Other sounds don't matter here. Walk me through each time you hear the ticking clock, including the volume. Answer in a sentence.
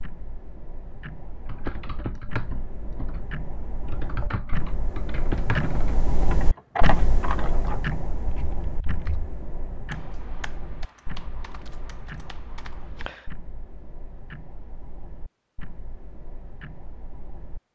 The ticking clock can be heard from 0.0 to 17.7 s, getting louder then quieter.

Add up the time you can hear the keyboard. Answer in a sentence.
The keyboard can be heard for 12 seconds in total.